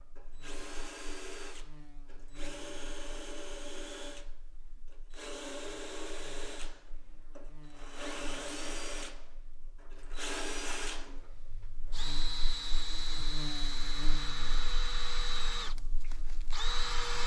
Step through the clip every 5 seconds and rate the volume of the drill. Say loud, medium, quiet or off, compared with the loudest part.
medium, medium, loud, loud.